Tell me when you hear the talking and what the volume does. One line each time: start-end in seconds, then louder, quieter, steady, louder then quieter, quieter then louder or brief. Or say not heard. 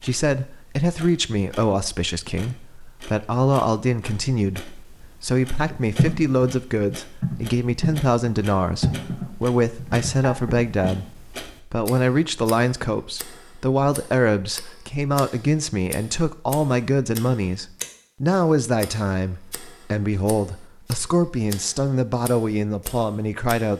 0.0-23.7 steady.